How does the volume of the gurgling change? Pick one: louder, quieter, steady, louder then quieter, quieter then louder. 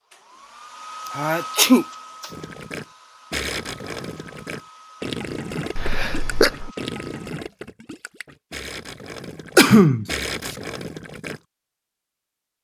quieter then louder.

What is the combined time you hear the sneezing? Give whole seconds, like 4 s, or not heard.
3 s.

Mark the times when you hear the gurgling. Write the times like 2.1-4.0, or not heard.
2.3-11.4.